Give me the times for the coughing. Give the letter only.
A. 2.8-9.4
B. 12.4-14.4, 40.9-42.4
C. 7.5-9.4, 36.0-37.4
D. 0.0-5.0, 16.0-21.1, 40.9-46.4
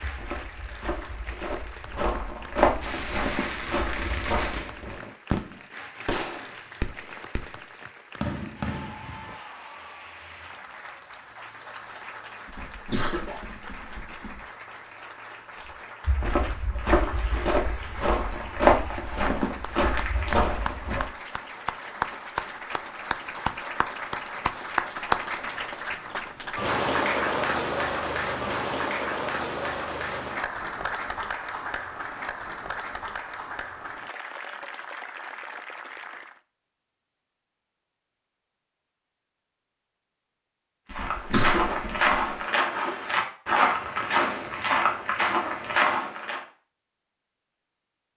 B.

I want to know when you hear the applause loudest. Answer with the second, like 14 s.
27 s.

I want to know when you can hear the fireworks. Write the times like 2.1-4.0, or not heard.
2.8-9.4.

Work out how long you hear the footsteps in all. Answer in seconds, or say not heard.
16 s.